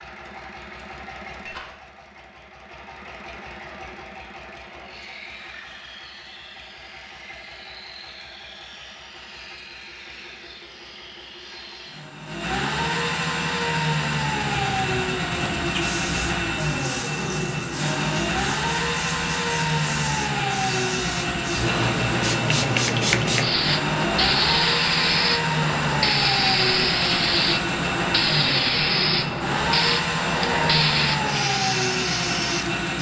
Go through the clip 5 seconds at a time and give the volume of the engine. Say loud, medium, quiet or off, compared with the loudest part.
quiet, quiet, loud, loud, loud, loud, loud.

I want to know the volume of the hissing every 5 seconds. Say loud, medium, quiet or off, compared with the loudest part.
off, off, off, quiet, loud, loud, loud.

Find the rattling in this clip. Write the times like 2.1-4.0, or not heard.
1.4-1.9.